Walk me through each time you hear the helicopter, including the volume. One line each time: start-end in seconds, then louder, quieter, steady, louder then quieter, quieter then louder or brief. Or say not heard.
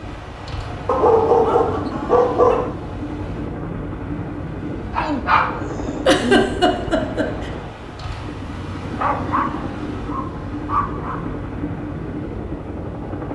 0.0-13.3 steady.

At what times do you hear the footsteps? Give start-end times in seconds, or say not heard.
not heard.